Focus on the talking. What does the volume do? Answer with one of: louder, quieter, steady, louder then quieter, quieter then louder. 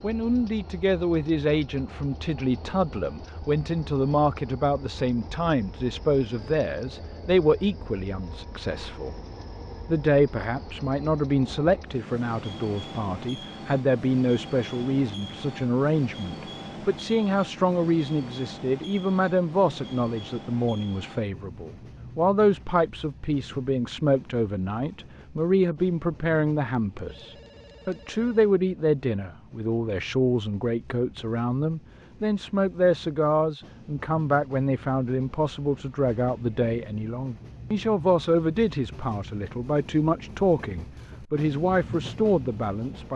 steady.